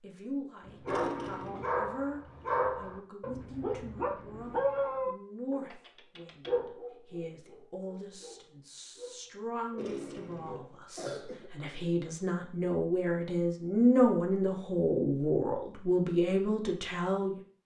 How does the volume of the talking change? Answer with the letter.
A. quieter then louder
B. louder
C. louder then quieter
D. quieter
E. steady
B.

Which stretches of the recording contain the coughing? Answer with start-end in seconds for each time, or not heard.
0.8-1.7, 9.8-11.5.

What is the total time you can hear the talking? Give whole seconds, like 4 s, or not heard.
17 s.